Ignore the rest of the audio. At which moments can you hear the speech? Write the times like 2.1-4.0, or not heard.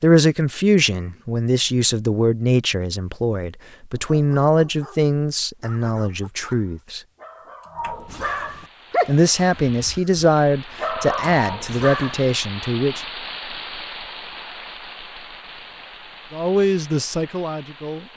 0.0-7.0, 9.1-13.0, 16.3-18.1.